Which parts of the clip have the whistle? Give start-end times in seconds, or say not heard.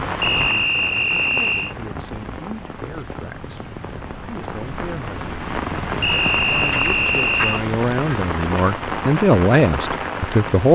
0.2-1.8, 6.0-7.7.